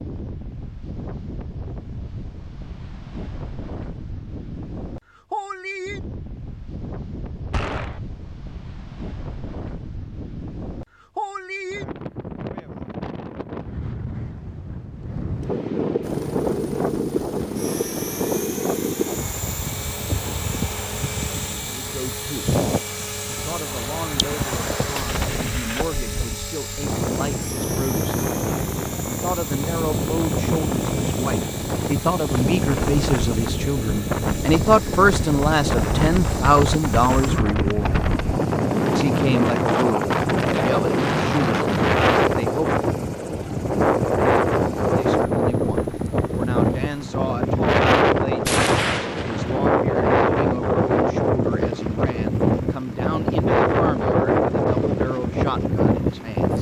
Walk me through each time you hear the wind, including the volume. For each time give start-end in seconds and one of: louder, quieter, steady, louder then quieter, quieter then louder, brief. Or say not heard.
0.0-56.5 louder.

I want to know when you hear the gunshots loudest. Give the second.
49 s.